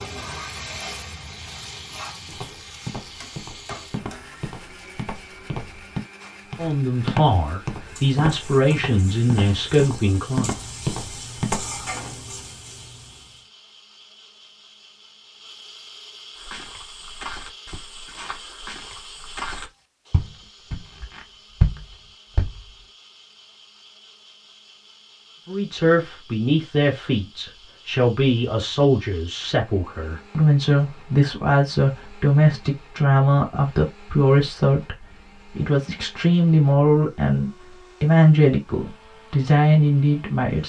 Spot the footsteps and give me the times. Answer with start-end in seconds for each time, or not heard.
2.2-11.8, 16.4-22.7.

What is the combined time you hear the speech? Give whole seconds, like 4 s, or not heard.
19 s.